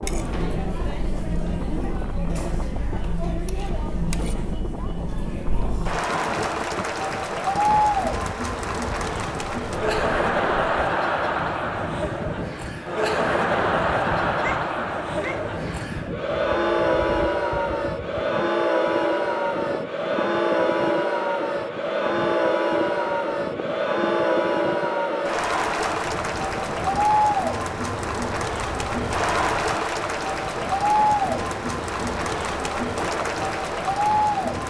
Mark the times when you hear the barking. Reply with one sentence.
The barking can be heard from 14.4 to 15.6 s.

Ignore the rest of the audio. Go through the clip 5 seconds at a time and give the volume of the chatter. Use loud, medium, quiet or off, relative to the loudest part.
medium, loud, loud, loud, loud, loud, loud.